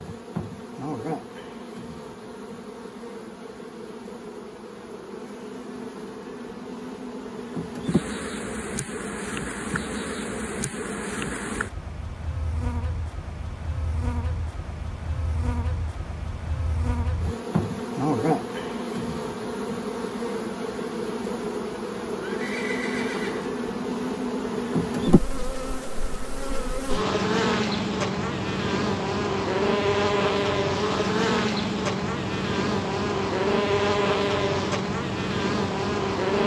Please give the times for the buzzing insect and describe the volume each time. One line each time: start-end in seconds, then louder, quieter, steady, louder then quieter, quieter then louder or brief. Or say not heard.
0.0-36.4 louder.